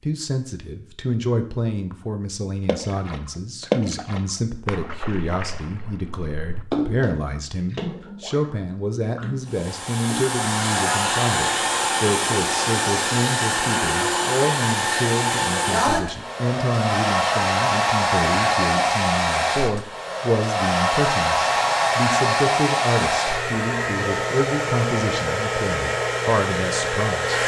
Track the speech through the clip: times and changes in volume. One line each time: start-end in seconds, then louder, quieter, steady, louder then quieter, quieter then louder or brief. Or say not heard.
0.0-27.4 steady.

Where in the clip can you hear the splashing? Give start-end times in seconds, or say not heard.
2.6-10.3.